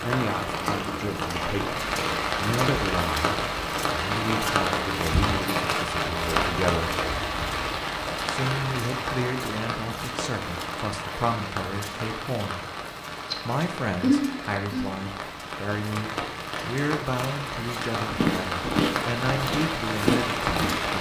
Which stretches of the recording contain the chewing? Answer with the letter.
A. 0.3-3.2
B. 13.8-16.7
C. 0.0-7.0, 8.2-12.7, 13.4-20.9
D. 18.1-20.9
D.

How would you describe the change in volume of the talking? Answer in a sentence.
The loudness of the talking stays about the same.